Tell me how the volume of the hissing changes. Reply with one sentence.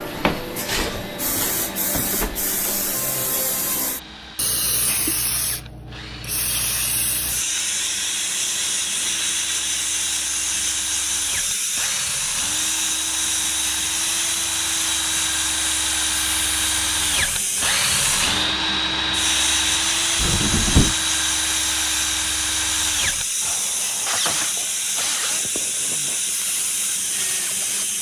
The volume of the hissing stays about the same.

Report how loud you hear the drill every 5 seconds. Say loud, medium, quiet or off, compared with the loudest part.
quiet, quiet, medium, loud, loud, medium.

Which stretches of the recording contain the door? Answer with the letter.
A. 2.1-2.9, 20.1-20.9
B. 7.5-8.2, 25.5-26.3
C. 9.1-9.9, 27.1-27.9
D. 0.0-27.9
A.